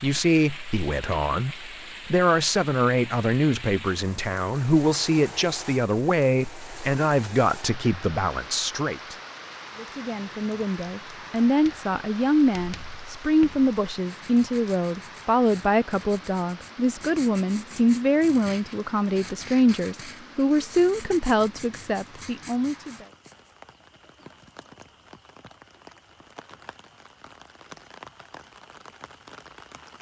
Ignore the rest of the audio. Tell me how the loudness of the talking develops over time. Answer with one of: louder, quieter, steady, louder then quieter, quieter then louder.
steady.